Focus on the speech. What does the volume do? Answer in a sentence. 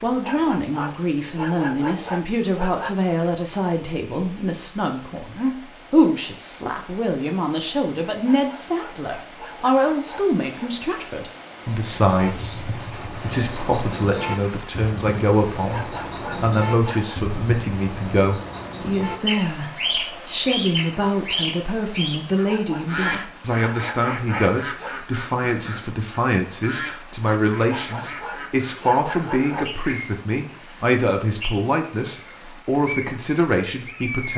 The volume of the speech stays about the same.